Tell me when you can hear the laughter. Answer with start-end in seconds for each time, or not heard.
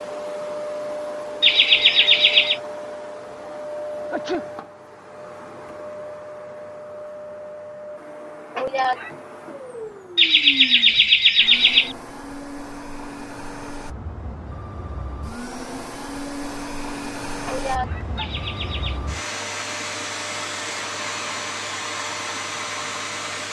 1.4-2.6, 10.2-11.9, 18.1-19.0.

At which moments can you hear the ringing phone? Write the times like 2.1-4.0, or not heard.
not heard.